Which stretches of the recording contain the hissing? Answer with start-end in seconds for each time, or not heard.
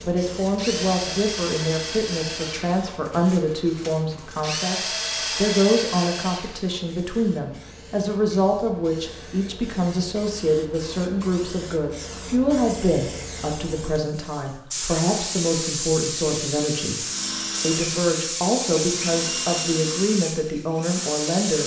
0.0-21.6.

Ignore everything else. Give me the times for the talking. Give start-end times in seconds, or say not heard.
0.0-17.0, 17.6-21.6.